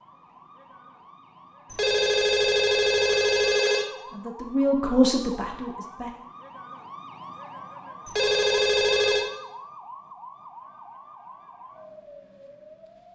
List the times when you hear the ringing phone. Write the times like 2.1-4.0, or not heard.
1.7-3.9, 8.1-9.2.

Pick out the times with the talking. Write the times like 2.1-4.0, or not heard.
4.1-6.1.